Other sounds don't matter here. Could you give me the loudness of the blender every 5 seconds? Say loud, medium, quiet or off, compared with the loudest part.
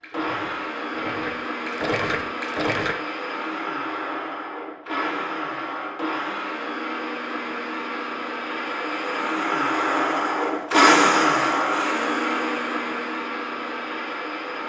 medium, medium, loud.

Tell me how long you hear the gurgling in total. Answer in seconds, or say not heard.
3 s.